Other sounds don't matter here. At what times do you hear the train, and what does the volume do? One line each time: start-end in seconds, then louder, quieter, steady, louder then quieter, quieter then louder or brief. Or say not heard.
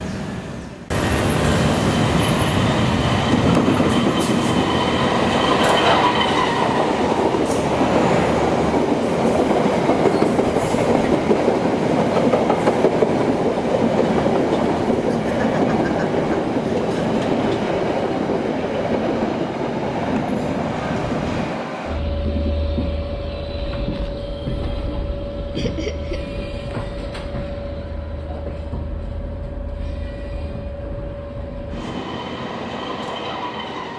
0.0-33.9 quieter.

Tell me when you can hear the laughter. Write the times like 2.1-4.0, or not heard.
5.5-6.1, 15.1-17.1, 25.6-26.2.